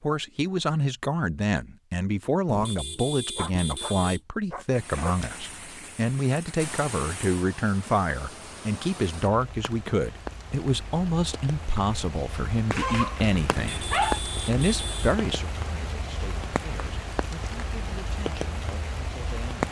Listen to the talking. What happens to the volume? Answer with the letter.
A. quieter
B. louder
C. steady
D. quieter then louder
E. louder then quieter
A.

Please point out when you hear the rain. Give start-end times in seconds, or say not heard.
4.7-19.6.